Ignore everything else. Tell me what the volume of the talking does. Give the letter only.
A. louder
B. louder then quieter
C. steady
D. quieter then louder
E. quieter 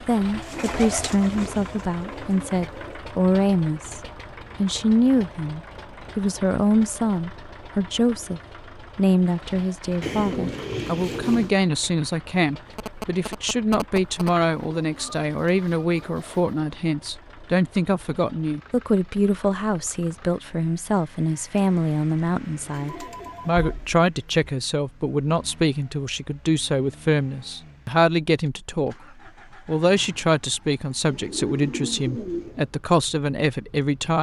C.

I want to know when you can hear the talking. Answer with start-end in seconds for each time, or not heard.
0.1-4.0, 4.6-28.9, 29.6-34.1.